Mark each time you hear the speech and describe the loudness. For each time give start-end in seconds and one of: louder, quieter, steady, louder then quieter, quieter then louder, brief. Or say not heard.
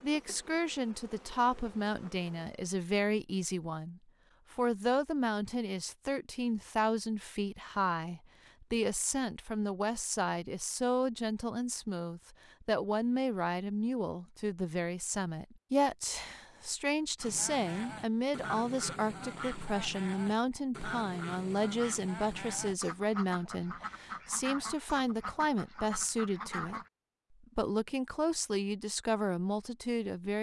0.0-26.8 steady
27.4-30.3 brief.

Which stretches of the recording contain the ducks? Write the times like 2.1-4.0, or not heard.
17.1-26.9.